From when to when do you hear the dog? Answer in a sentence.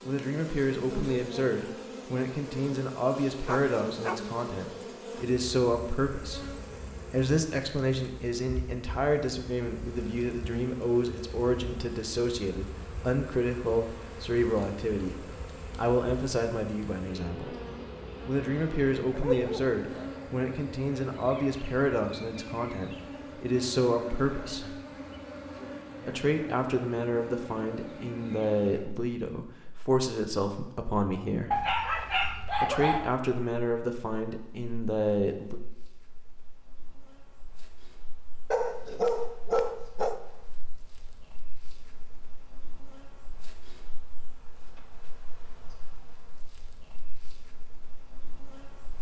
The dog can be heard from 3.5 to 4.2 s, from 19.1 to 19.8 s, from 31.5 to 33.1 s and from 38.5 to 40.2 s.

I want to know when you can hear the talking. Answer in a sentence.
The talking can be heard from 0.0 to 17.6 s, from 18.2 to 24.8 s, from 26.1 to 31.6 s and from 32.6 to 35.6 s.